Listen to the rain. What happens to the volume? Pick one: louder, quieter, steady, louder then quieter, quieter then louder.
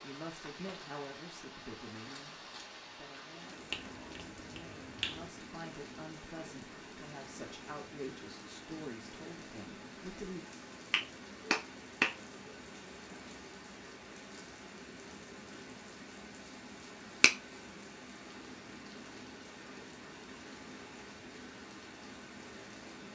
steady.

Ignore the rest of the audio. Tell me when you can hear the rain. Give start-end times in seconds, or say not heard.
0.0-23.1.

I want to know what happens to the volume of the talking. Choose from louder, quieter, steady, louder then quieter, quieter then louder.
quieter then louder.